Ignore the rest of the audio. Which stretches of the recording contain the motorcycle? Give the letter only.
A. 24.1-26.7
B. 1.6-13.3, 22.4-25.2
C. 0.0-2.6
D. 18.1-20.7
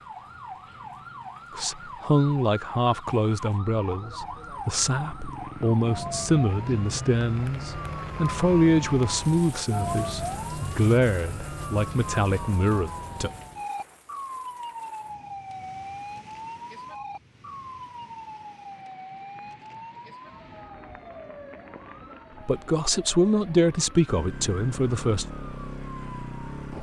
A.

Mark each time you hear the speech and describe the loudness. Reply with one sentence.
You can hear the speech from 1.6 to 13.3 s, at a steady volume; and briefly from 22.4 to 25.2 s.